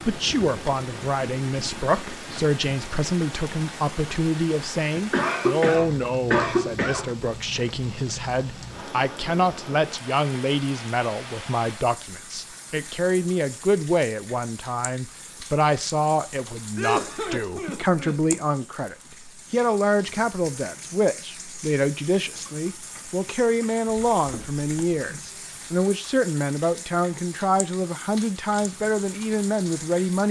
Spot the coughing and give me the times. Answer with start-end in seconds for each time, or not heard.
5.1-7.0, 16.8-18.4, 23.9-25.2.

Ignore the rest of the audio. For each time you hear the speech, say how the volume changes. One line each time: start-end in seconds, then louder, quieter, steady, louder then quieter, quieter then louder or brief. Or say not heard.
0.1-30.2 steady.